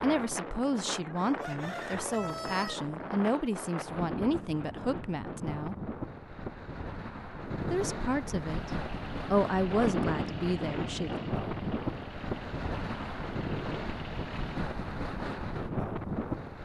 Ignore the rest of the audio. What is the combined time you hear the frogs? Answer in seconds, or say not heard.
not heard.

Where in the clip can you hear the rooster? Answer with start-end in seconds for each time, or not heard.
1.1-2.9.